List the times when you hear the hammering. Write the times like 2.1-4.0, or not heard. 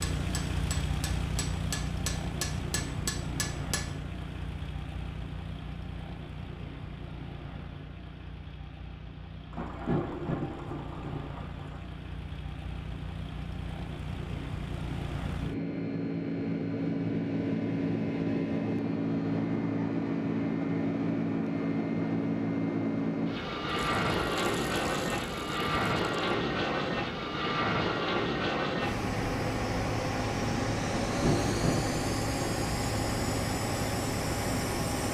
0.0-3.9.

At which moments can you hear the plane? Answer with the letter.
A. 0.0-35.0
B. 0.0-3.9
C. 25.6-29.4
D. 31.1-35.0
A.